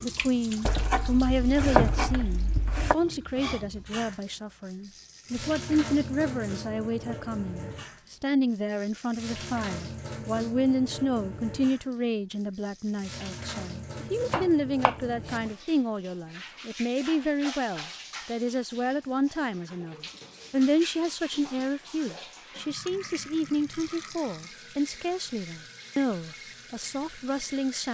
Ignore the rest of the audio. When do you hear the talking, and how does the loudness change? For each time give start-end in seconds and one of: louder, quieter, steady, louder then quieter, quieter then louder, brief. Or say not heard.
0.0-27.8 steady.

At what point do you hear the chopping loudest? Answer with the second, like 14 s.
2 s.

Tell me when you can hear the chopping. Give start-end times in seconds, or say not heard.
0.7-3.0, 14.3-15.4.